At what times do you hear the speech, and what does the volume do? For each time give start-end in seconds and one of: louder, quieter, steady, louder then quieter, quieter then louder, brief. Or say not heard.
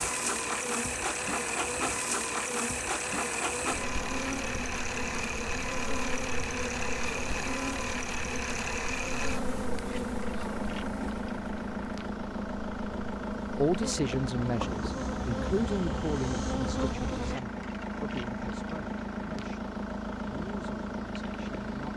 13.6-21.9 quieter.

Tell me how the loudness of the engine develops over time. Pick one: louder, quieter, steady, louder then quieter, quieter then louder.
steady.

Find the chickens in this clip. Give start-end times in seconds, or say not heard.
not heard.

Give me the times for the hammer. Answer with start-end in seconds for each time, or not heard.
not heard.